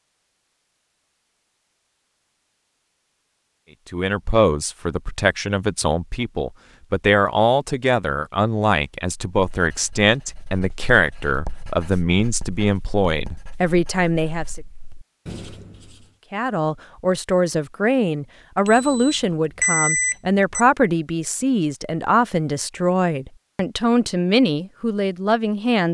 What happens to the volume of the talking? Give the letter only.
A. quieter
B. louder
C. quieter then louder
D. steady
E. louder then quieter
D.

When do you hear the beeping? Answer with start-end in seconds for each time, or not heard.
18.6-20.6.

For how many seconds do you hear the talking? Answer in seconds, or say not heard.
20 s.